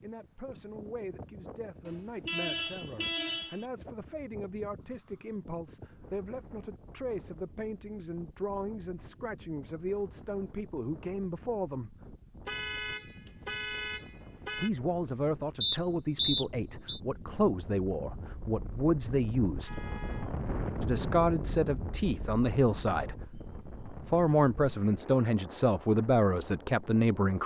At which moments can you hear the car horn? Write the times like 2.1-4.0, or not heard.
1.9-3.6, 12.4-14.7, 19.6-20.3.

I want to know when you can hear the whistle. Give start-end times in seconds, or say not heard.
15.6-17.0.